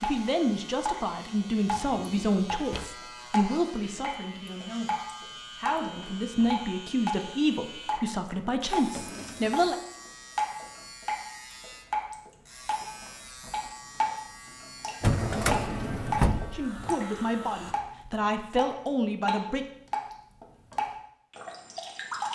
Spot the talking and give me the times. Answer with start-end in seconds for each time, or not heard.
0.0-9.8, 16.5-19.6.